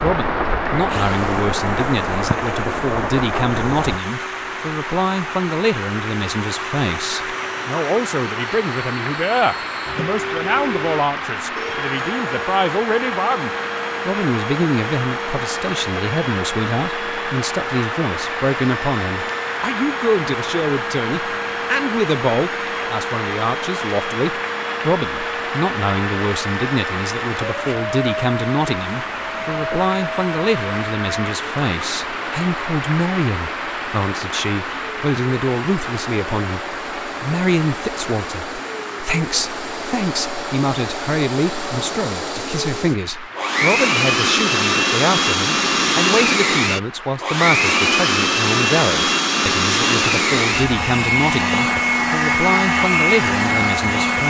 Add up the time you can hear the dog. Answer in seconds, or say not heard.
not heard.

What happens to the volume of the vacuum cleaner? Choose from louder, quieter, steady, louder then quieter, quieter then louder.
louder.